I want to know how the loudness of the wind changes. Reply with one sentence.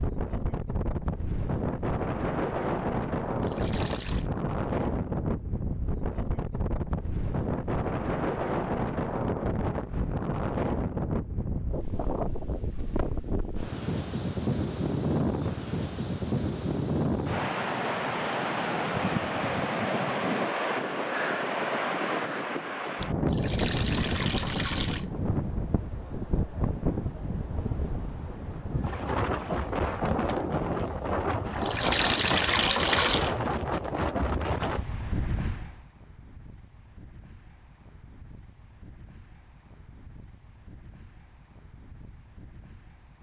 The volume of the wind goes down.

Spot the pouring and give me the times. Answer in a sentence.
The pouring can be heard from 3.4 to 4.2 s, from 23.2 to 25.1 s and from 31.6 to 33.4 s.